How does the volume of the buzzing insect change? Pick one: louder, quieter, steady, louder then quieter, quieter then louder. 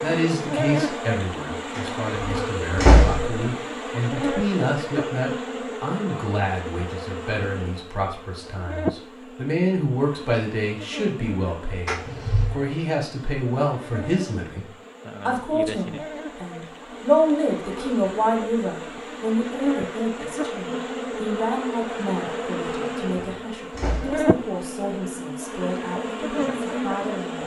quieter then louder.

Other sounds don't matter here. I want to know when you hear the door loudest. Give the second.
3 s.